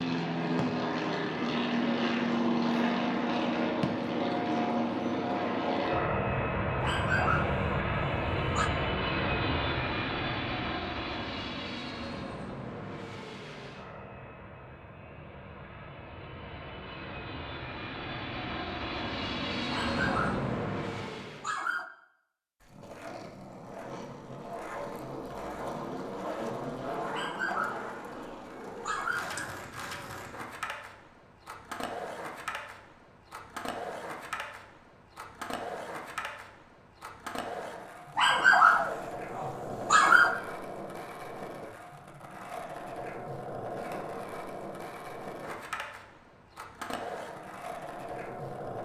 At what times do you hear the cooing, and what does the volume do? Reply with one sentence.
You can't hear the cooing here.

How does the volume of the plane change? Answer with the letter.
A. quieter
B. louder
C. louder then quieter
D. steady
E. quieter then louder
E.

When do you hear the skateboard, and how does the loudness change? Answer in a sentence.
The skateboard can be heard from 22.6 to 48.8 s, at a steady volume.